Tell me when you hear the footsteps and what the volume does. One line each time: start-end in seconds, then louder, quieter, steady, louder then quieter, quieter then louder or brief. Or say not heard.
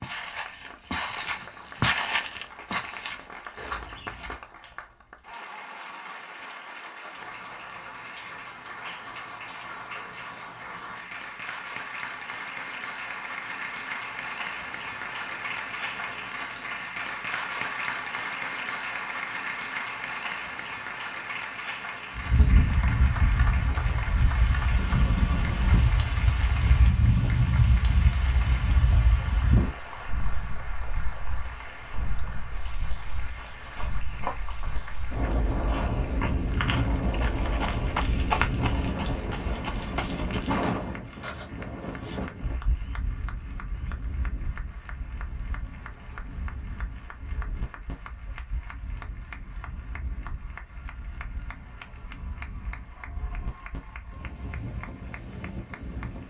0.0-4.4 louder then quieter
33.4-40.6 louder then quieter.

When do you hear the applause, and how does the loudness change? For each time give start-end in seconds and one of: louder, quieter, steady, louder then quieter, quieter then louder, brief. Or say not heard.
0.2-56.2 louder then quieter.